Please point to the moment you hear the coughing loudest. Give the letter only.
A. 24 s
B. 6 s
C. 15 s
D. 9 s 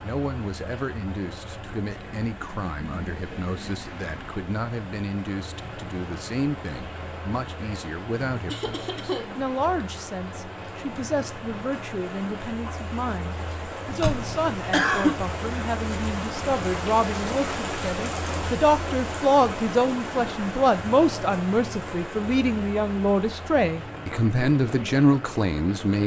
C.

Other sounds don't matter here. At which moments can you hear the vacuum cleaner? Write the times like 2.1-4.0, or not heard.
not heard.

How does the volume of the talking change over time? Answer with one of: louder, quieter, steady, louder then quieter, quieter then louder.
louder.